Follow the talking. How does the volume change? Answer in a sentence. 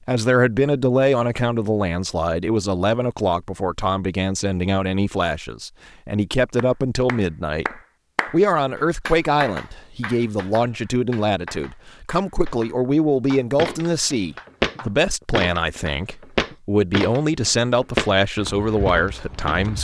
The loudness of the talking stays about the same.